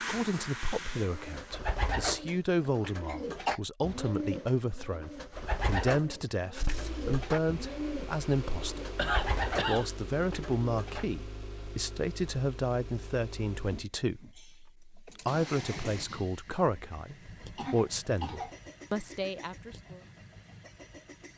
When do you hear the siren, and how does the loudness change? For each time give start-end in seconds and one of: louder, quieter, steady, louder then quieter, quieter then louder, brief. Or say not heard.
not heard.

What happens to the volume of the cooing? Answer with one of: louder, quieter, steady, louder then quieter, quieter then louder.
steady.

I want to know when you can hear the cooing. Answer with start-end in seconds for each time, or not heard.
0.8-11.1.